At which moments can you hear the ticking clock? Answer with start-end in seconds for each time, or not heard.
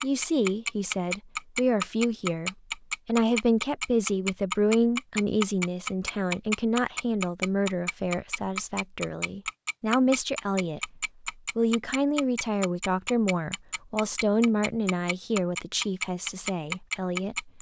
0.0-17.5.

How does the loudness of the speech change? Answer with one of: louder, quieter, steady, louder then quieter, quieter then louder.
steady.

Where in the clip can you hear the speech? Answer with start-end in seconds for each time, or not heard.
0.0-17.5.